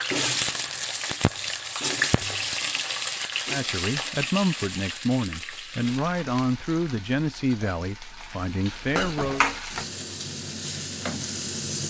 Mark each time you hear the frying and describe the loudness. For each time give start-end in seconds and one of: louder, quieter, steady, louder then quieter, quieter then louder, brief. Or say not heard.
0.0-11.8 quieter then louder.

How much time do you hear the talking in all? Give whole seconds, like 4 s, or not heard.
6 s.